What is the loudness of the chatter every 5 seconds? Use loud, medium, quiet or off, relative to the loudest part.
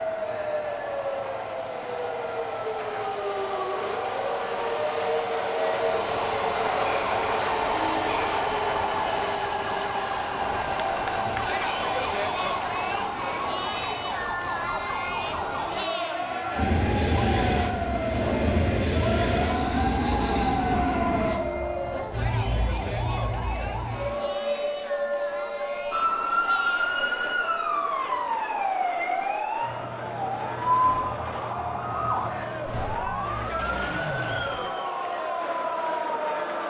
off, off, loud, loud, medium, medium, loud, loud.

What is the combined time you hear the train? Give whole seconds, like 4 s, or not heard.
18 s.